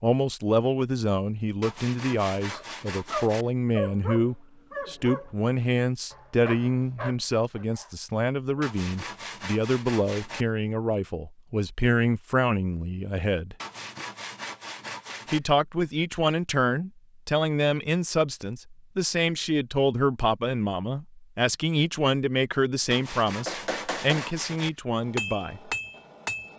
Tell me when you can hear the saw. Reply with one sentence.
You can hear the saw from 1.6 to 3.5 s, from 8.6 to 10.4 s, from 13.6 to 15.4 s and from 22.9 to 24.7 s.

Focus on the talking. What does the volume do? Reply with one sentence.
The loudness of the talking stays about the same.